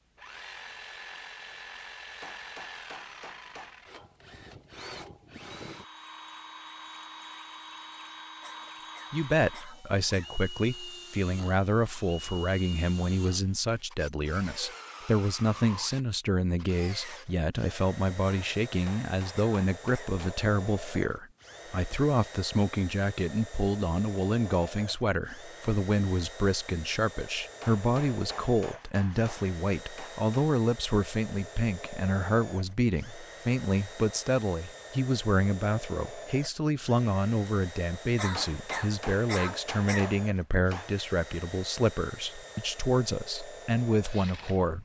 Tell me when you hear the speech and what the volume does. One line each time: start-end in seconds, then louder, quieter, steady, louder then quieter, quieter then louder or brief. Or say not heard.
9.1-44.7 steady.